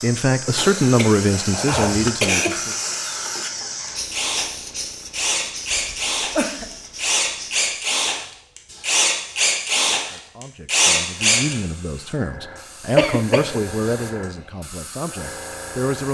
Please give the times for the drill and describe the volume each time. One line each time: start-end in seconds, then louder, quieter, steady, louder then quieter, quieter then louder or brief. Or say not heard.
0.0-11.6 louder.